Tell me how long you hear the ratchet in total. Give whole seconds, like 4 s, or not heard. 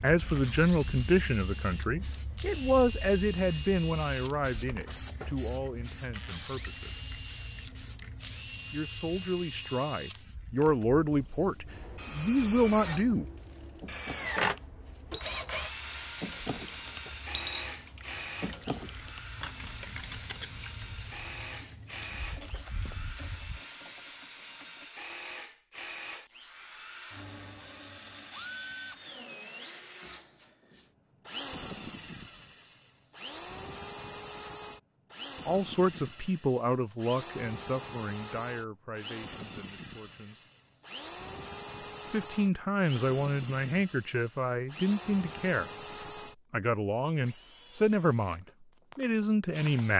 12 s.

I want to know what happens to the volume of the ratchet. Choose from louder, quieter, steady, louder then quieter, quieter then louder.
louder then quieter.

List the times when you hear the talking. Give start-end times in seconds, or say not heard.
0.0-7.0, 8.7-13.2, 35.5-40.4, 42.1-45.7, 46.5-49.9.